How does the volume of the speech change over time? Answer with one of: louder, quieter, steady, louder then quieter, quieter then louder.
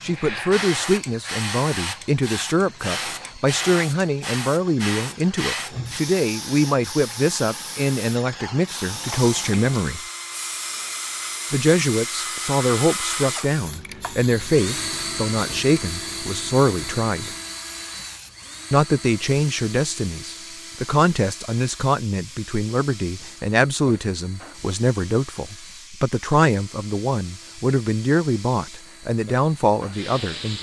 steady.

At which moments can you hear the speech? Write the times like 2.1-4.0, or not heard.
0.0-10.0, 11.5-17.3, 18.7-30.5.